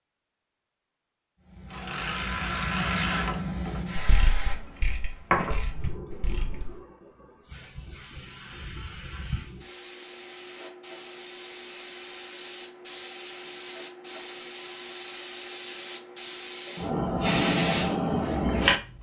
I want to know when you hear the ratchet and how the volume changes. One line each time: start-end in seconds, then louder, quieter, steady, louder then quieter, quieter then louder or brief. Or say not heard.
1.7-6.8 quieter.